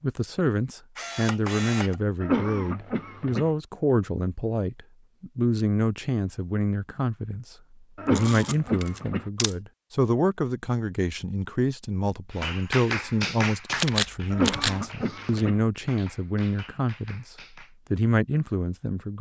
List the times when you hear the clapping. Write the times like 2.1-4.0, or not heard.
12.3-17.8.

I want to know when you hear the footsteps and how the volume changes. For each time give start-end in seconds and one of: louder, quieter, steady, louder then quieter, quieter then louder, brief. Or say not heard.
not heard.